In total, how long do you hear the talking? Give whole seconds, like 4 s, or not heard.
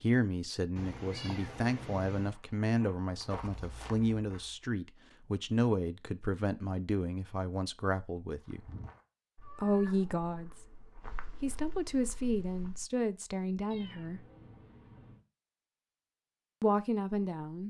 13 s.